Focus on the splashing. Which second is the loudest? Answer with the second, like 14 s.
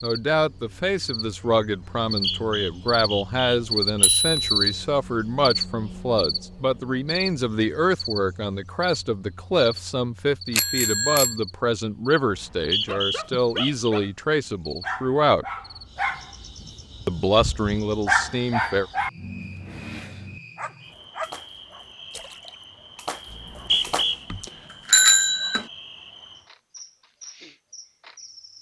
24 s.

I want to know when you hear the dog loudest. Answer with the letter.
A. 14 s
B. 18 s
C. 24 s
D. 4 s
B.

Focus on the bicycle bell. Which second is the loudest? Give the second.
25 s.